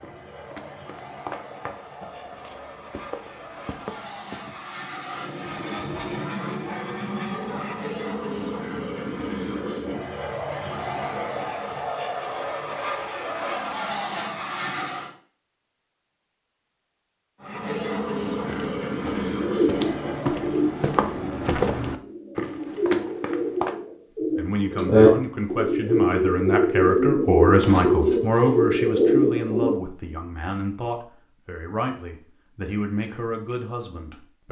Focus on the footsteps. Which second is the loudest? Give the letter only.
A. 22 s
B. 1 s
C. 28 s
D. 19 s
A.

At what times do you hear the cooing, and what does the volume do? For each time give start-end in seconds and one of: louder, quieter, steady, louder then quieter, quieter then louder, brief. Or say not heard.
19.4-29.8 louder.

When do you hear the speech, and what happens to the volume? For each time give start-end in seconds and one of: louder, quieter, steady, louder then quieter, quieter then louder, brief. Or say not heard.
24.4-34.4 louder then quieter.